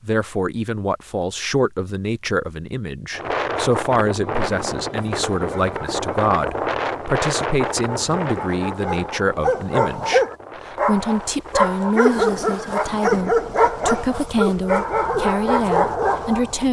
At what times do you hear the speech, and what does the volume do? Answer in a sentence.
The speech can be heard from 0.0 to 16.6 s, at a steady volume.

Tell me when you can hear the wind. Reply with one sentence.
The wind can be heard from 3.1 to 16.6 s.